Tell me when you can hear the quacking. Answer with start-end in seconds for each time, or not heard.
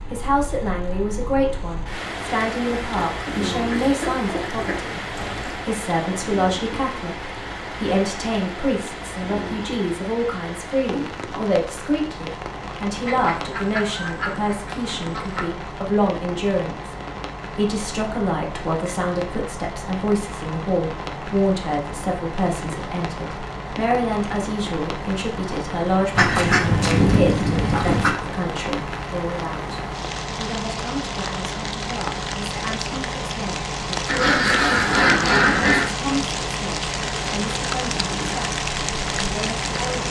2.8-5.7, 13.0-15.4, 26.1-28.1, 34.0-35.9.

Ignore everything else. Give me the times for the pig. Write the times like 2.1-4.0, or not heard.
not heard.